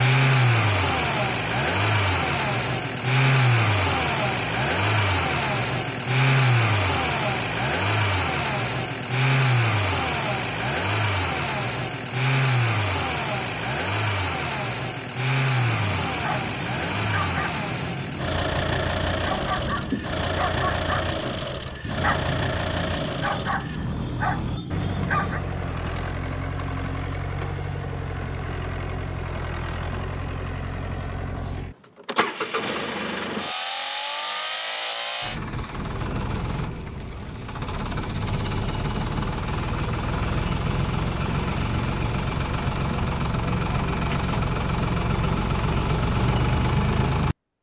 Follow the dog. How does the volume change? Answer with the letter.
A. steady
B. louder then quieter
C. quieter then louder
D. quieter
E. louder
A.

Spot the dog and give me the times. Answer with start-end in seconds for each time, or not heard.
15.6-25.4.